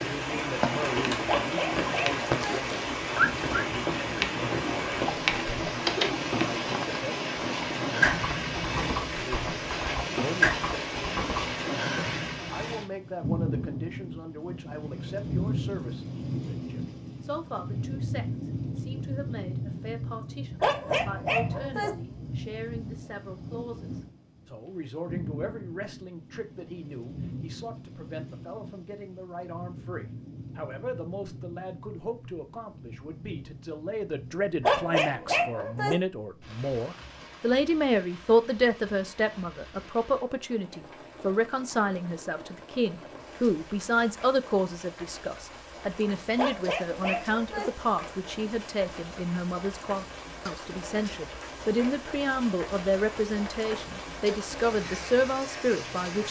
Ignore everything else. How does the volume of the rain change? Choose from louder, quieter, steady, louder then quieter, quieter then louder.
quieter then louder.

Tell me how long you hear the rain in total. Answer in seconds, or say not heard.
56 s.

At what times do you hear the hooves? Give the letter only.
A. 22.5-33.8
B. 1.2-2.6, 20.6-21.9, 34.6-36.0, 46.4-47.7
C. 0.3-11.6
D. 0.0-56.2
C.